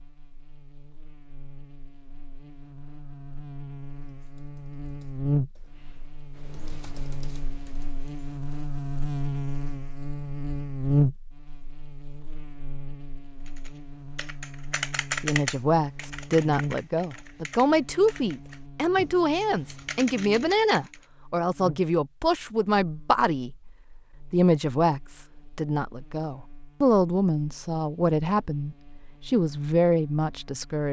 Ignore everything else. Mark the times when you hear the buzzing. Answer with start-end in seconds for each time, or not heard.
0.0-30.8.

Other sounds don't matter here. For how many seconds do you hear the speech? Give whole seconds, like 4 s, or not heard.
15 s.